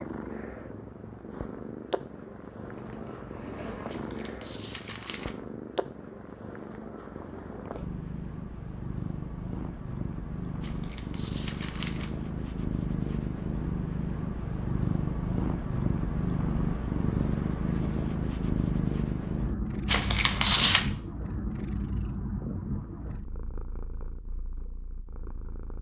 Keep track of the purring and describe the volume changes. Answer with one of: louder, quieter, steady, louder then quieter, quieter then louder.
louder then quieter.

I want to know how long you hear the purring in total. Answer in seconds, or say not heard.
26 s.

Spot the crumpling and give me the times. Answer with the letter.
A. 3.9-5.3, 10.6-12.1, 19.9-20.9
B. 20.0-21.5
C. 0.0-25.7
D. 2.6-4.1
A.